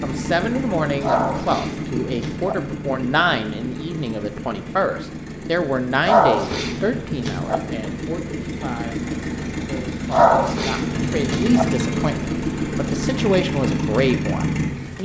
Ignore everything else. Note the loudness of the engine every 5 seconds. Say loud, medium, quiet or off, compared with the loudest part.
medium, medium, loud.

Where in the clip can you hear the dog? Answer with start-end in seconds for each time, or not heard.
1.0-2.5, 6.0-7.6, 10.1-11.7.